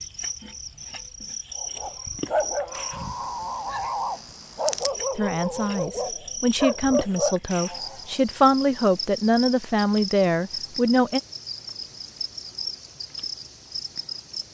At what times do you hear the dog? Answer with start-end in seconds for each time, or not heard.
1.6-8.2.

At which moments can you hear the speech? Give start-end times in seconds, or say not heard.
5.2-11.2.